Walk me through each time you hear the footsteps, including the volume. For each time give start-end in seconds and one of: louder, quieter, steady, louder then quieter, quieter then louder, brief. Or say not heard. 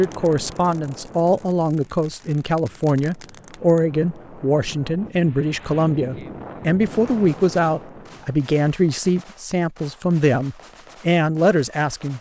not heard.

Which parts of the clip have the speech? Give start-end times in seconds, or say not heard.
0.0-12.1.